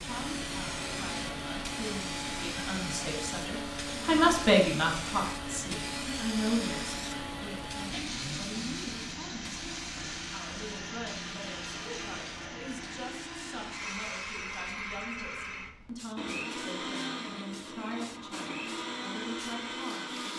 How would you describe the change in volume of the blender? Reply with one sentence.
The volume of the blender stays about the same.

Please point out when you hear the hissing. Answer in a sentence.
The hissing can be heard from 0.0 to 20.3 s.